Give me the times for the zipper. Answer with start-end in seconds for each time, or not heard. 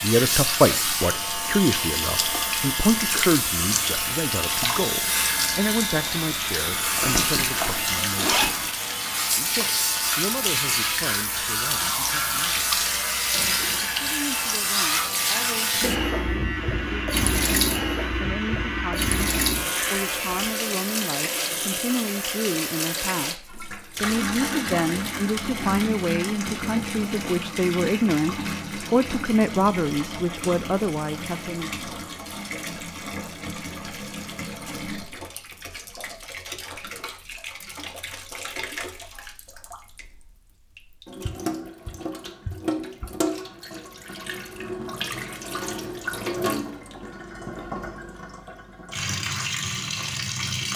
6.7-8.7.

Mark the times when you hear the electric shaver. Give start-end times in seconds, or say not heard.
0.0-20.6.